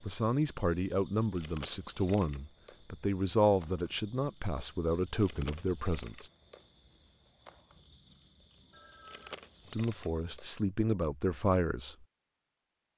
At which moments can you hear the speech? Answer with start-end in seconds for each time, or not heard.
0.0-6.3, 9.7-12.1.